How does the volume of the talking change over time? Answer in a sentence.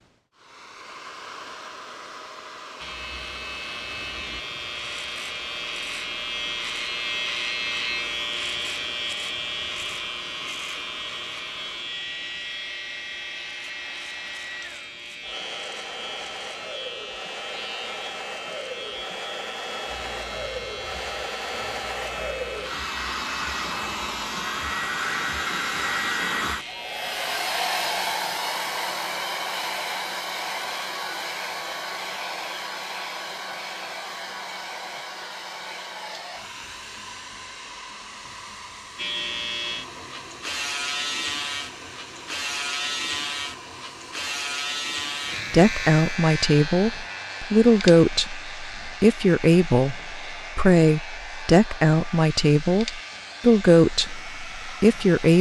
The loudness of the talking stays about the same.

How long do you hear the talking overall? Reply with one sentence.
The talking can be heard for 10 seconds in total.